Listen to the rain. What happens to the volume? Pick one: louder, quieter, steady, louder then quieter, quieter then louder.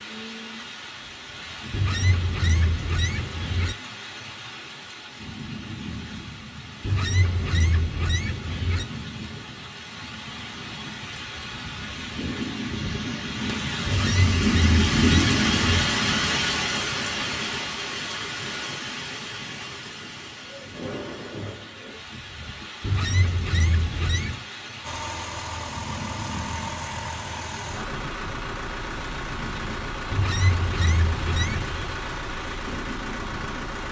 louder then quieter.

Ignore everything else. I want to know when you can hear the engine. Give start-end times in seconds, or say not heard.
24.8-33.8.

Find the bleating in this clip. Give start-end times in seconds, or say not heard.
not heard.